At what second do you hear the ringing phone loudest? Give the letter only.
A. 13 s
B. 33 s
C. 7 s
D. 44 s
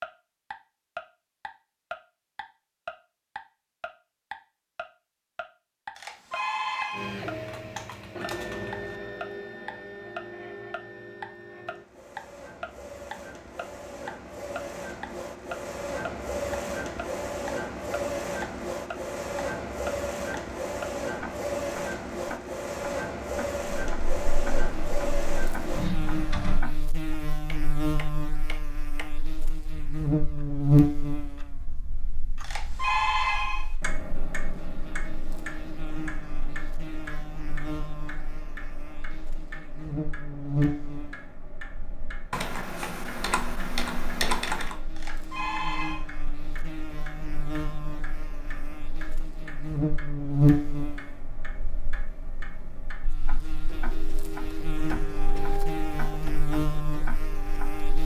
B.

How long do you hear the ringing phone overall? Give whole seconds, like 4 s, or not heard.
4 s.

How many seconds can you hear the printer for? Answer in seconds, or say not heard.
24 s.